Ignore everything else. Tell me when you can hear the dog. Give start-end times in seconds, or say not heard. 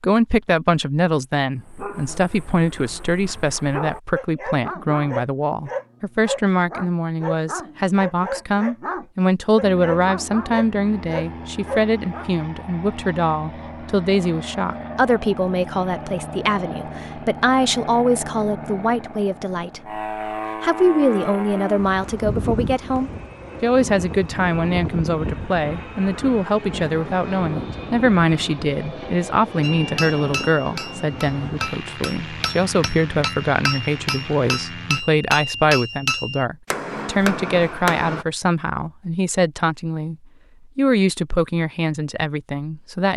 1.6-12.3.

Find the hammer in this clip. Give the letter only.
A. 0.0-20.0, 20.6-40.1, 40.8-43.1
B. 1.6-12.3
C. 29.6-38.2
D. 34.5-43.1
C.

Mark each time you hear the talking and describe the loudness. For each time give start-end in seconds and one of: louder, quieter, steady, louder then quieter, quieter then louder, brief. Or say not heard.
0.0-20.0 steady
20.6-40.1 steady
40.8-43.1 brief.